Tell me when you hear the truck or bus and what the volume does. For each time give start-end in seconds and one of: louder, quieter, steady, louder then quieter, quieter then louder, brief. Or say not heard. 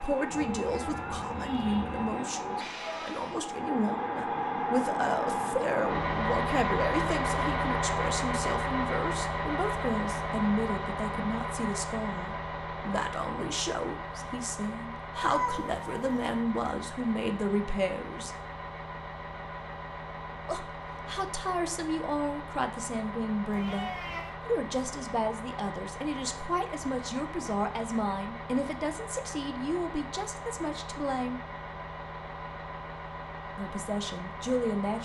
0.0-35.0 quieter.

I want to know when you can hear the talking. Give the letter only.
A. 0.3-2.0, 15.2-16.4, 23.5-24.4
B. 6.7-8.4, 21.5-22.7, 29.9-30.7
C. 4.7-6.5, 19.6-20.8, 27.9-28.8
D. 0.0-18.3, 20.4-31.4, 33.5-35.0
D.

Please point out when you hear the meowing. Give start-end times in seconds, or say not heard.
0.3-2.0, 15.2-16.4, 23.5-24.4.